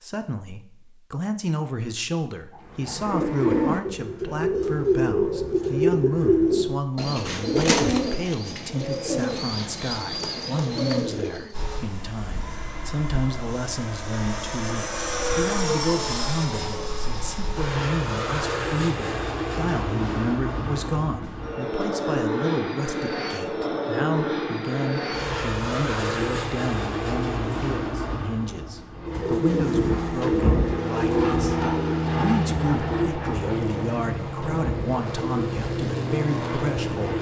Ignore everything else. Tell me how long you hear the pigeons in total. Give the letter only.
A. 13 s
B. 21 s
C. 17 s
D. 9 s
C.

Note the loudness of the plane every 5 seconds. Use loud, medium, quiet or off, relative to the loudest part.
off, off, medium, loud, loud, loud, loud, loud.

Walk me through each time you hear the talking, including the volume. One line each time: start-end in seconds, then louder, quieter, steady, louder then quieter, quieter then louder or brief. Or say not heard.
0.0-37.1 steady.